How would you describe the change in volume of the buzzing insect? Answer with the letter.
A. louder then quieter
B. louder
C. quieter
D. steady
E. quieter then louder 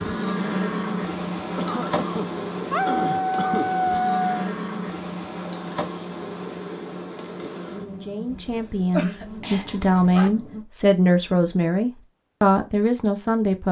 C.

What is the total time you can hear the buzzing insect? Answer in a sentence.
The buzzing insect can be heard for 11 seconds in total.